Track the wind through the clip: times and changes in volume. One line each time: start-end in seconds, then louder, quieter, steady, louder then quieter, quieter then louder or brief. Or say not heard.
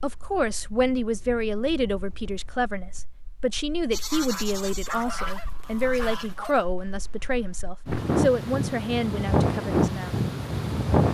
0.0-11.0 quieter then louder.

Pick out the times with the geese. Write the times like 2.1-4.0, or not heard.
3.9-6.7.